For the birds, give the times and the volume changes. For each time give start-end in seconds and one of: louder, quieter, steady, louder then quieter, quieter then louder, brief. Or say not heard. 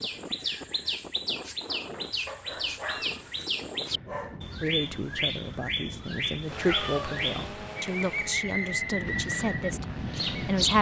0.0-10.7 steady.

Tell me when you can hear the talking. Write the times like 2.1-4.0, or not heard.
4.6-10.7.